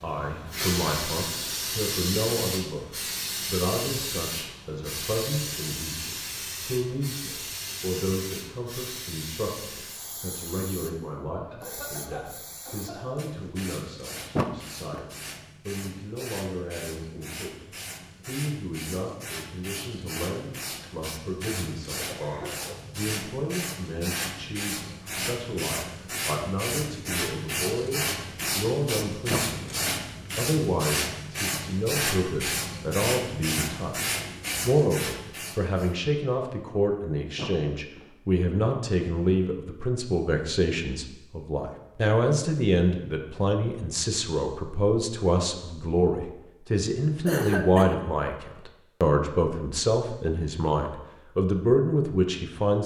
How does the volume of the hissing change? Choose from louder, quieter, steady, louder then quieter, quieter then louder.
quieter then louder.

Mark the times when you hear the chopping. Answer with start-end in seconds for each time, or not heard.
not heard.